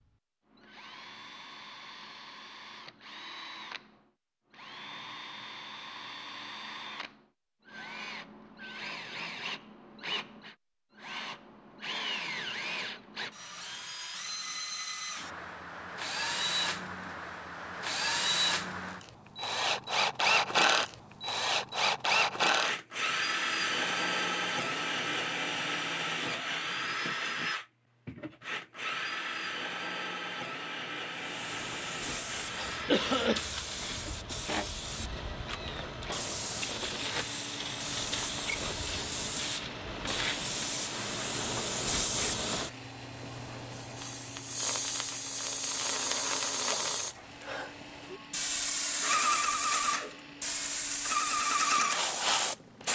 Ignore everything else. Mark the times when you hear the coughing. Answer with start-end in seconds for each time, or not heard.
32.5-33.5.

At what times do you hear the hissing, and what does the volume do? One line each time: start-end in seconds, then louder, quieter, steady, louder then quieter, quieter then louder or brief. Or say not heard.
31.1-52.8 louder.